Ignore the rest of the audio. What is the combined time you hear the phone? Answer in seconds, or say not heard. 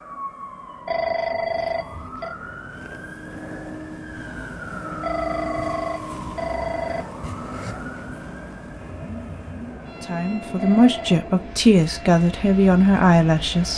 4 s.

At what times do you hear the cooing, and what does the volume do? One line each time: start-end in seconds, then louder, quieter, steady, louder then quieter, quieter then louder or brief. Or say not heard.
not heard.